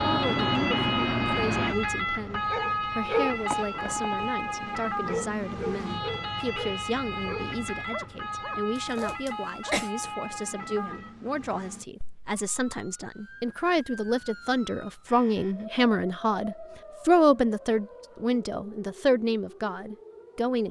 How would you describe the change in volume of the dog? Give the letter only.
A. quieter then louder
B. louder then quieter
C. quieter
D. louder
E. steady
C.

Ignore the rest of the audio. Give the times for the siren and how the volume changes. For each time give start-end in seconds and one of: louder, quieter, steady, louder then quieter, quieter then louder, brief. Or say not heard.
0.0-20.6 quieter.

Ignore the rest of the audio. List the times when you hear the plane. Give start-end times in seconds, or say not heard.
0.0-1.8.